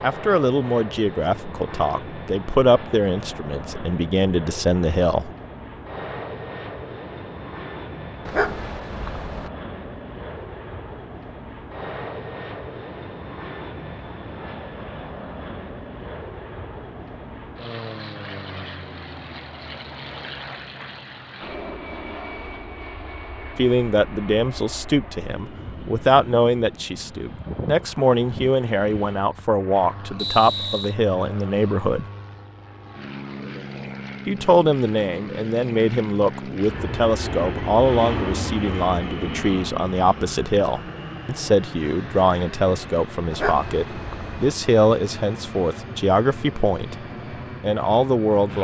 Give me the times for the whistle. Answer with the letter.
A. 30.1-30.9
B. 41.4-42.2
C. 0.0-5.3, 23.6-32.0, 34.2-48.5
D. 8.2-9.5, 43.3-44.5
A.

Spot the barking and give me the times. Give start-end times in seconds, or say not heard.
8.2-9.5, 43.3-44.5.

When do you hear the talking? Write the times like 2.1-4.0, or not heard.
0.0-5.3, 23.6-32.0, 34.2-48.5.